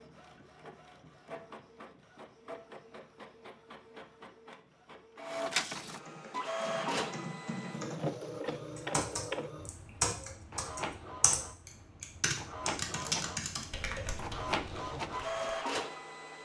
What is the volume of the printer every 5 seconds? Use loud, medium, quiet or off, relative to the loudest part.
quiet, loud, medium, loud.